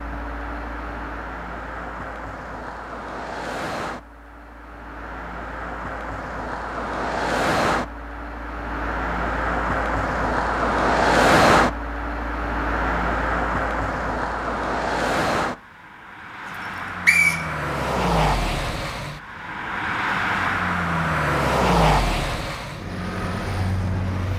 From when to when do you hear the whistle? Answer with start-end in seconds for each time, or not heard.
16.6-17.5.